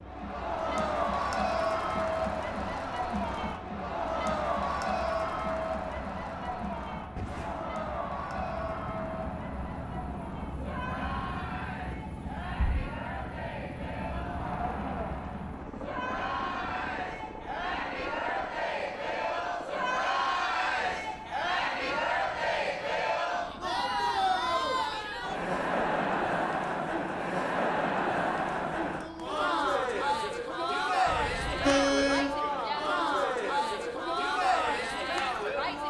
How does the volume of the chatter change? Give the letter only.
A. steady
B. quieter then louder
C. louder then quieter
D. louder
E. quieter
B.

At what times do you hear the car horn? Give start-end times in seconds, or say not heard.
31.1-32.4.